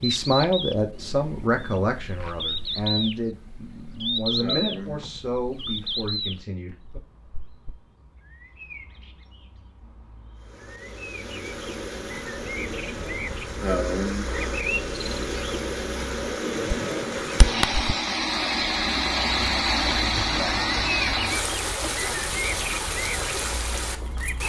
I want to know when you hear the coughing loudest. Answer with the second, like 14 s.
14 s.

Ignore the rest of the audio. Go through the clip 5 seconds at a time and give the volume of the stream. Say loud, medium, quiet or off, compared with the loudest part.
off, off, medium, loud, loud.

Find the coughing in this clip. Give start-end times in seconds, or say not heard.
4.4-5.0, 13.6-14.4.